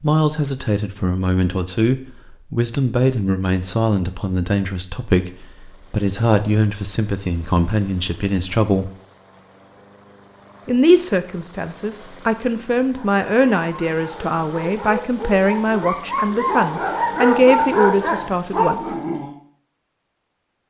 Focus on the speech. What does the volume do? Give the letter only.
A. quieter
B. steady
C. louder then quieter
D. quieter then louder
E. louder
B.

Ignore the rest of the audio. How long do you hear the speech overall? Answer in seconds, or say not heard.
17 s.